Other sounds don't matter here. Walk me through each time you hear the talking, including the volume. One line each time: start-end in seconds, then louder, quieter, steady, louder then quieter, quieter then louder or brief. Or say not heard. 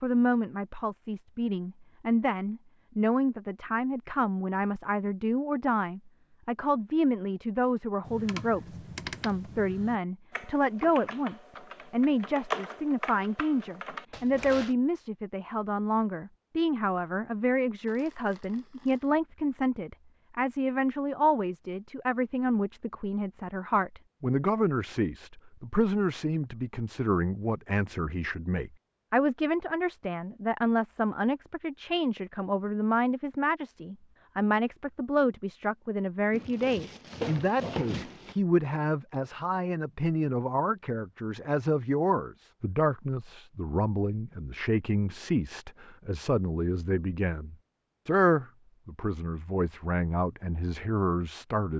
0.0-51.7 steady.